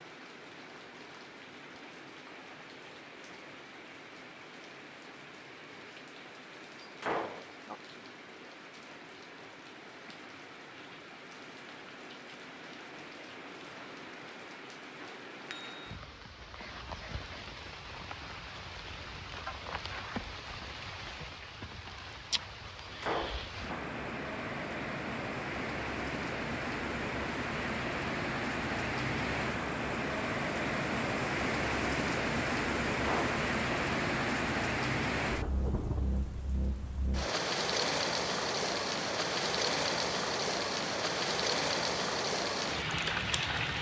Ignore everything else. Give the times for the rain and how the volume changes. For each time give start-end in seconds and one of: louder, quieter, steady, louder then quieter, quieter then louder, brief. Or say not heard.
0.0-43.7 louder.